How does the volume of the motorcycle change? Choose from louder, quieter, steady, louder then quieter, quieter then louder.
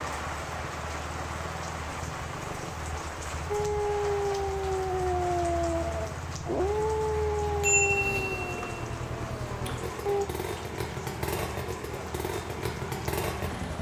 louder.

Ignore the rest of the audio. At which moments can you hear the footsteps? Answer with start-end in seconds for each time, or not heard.
not heard.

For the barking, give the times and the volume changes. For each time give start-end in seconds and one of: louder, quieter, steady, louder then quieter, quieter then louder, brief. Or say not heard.
3.5-10.2 quieter.